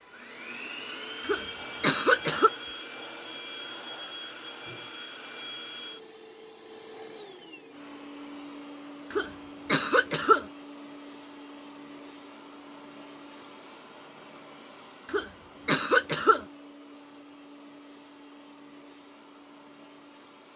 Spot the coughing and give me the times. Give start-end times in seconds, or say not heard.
1.2-2.5, 9.1-10.4, 15.1-16.4.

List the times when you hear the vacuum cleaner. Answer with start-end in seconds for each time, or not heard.
0.0-20.5.